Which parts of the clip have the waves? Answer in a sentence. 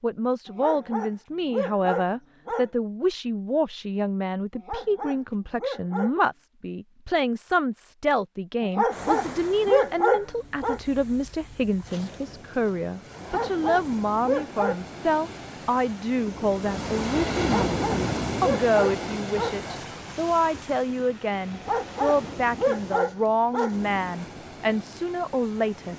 You can hear the waves from 8.9 to 25.9 s.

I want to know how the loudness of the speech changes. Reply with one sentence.
The volume of the speech stays about the same.